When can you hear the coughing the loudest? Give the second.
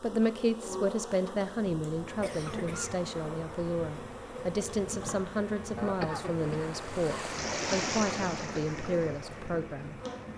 6 s.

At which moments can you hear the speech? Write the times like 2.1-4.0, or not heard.
0.0-10.0.